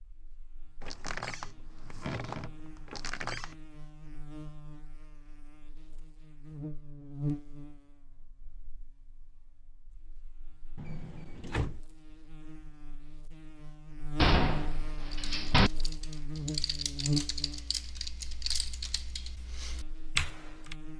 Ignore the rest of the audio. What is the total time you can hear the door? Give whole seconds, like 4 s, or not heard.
5 s.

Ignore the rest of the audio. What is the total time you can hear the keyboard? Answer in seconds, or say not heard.
6 s.